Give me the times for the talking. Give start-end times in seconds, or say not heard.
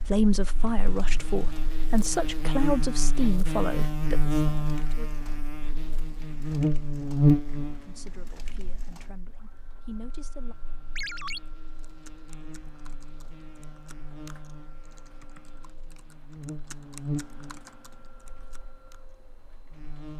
0.0-5.1, 7.8-10.6.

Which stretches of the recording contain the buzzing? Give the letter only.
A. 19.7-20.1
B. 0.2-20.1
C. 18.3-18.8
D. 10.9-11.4
B.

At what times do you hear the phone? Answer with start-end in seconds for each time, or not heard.
10.9-11.4.